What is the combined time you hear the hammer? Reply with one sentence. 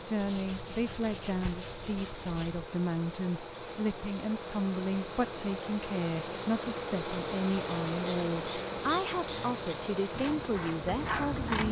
You can't hear the hammer here.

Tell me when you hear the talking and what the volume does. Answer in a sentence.
The talking can be heard from 0.1 to 11.6 s, at a steady volume.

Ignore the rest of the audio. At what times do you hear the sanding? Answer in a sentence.
The sanding can be heard from 0.1 to 2.7 s.